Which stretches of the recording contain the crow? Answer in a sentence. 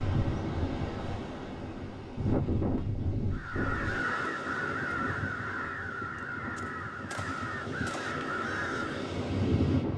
The crow can be heard from 3.3 to 9.1 s.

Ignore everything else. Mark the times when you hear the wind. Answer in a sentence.
You can hear the wind from 0.0 to 9.9 s.